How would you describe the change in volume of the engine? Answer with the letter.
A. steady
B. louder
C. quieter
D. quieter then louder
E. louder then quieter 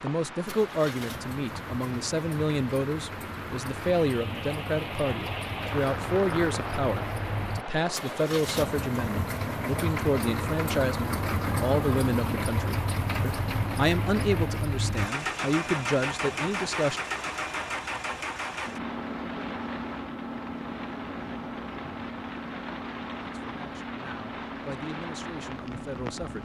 E.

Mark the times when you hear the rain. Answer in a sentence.
The rain can be heard from 0.0 to 26.3 s.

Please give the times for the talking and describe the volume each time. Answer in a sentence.
The talking can be heard from 0.0 to 17.0 s, at a steady volume; and briefly from 23.4 to 26.3 s.